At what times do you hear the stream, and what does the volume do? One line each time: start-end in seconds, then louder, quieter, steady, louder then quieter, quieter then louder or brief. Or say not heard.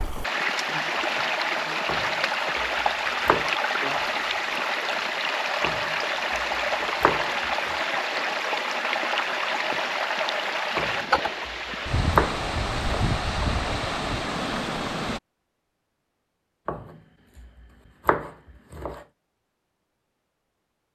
0.0-15.2 steady.